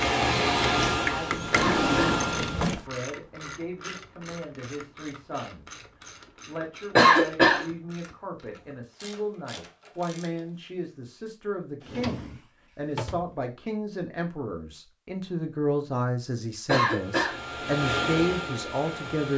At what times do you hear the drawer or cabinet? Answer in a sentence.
The drawer or cabinet can be heard from 1.6 to 2.9 s and from 11.8 to 13.3 s.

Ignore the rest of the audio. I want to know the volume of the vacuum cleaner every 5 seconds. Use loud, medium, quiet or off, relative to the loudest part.
loud, off, off, medium.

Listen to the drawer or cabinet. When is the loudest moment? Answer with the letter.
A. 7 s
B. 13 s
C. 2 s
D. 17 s
C.